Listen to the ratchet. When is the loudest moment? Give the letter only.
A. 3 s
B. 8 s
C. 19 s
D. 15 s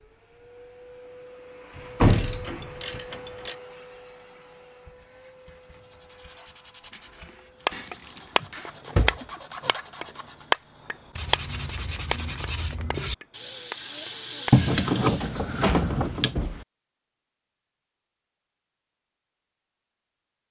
D.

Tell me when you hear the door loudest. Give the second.
2 s.